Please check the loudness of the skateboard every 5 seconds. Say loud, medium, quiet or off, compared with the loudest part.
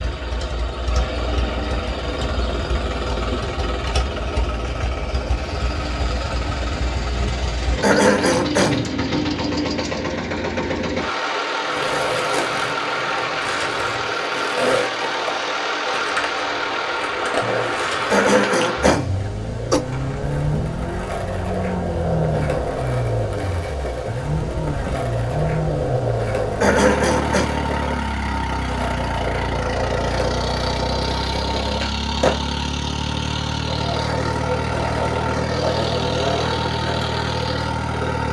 off, off, loud, loud, loud, loud, loud, loud.